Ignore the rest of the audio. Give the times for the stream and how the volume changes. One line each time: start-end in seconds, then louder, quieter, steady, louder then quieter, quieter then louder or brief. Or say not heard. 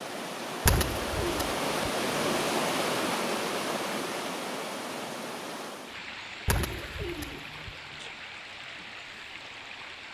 0.0-10.0 quieter.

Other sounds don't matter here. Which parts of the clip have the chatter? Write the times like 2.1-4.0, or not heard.
not heard.